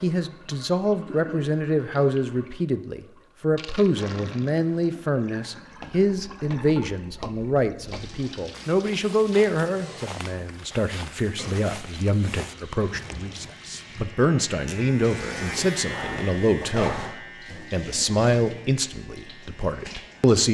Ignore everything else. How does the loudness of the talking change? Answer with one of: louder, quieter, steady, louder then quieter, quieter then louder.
steady.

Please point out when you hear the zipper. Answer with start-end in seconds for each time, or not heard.
15.8-17.1.